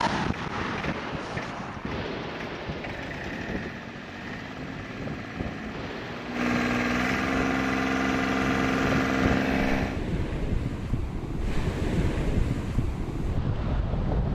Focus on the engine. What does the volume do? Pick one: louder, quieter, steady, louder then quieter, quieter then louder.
louder.